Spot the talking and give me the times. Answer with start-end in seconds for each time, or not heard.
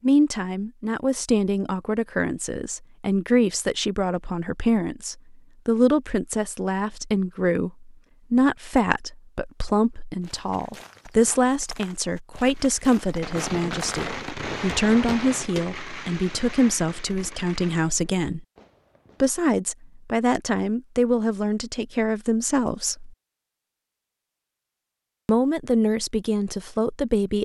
0.0-18.4, 19.2-23.1, 25.2-27.3.